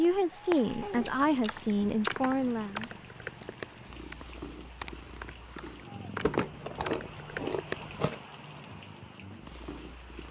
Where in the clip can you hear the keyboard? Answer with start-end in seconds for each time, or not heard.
1.4-7.9.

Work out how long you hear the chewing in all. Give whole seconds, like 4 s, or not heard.
4 s.